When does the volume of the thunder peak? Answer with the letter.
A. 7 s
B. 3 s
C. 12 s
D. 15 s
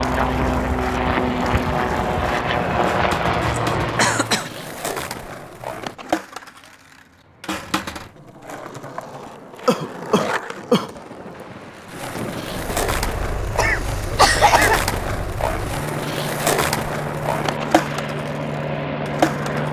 C.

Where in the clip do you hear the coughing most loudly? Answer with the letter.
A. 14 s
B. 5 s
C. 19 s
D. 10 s
A.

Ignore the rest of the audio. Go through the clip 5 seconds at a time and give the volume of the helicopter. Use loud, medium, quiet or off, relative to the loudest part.
loud, off, medium, medium.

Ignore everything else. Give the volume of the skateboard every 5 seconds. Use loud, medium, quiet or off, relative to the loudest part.
medium, medium, loud, loud.